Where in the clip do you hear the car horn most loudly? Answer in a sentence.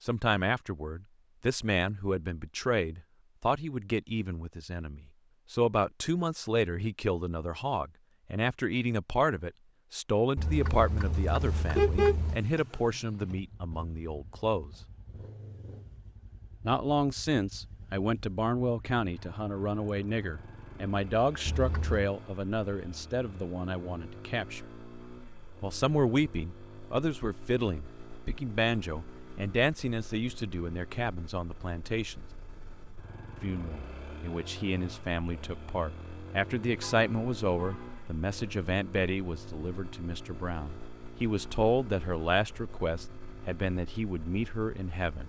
The loudest moment of the car horn is at 12 seconds.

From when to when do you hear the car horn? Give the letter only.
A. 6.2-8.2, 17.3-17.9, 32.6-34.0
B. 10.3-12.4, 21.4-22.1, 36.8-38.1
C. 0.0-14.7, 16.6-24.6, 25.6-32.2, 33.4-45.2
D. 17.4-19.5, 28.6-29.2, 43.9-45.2
B.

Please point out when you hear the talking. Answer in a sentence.
The talking can be heard from 0.0 to 14.7 s, from 16.6 to 24.6 s, from 25.6 to 32.2 s and from 33.4 to 45.2 s.